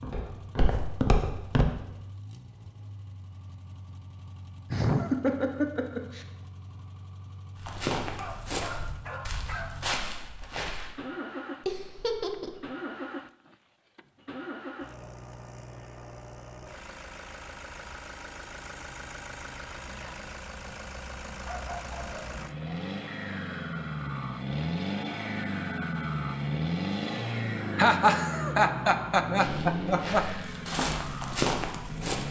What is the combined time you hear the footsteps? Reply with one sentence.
You can hear the footsteps for 8 seconds altogether.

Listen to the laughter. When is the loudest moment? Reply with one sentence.
The loudest moment of the laughter is at 28 seconds.